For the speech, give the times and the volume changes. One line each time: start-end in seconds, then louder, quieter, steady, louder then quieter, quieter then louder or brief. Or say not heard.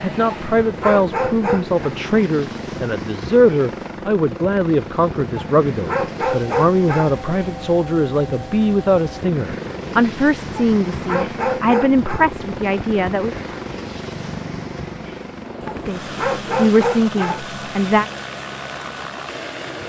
0.0-13.3 steady
15.8-18.1 brief.